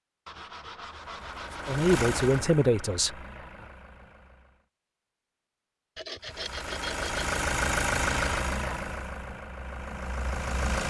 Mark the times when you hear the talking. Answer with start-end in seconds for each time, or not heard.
1.6-3.2.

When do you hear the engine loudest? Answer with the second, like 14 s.
8 s.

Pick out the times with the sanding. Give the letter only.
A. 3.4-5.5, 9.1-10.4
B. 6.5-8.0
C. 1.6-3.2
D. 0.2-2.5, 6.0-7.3
D.